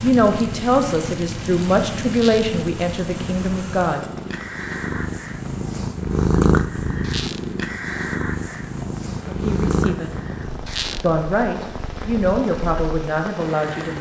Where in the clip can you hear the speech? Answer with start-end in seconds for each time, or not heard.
0.0-4.0, 9.2-10.1, 11.0-13.9.